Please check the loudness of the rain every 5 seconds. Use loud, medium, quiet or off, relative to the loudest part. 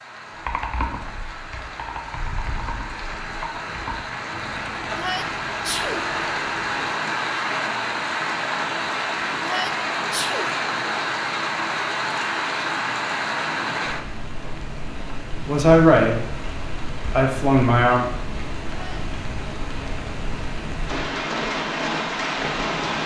medium, loud, loud, medium, loud.